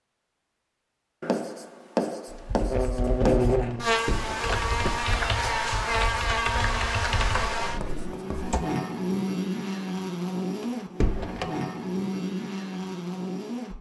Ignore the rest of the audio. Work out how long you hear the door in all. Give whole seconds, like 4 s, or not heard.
2 s.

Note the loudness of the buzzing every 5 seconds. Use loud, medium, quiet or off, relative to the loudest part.
loud, loud, medium.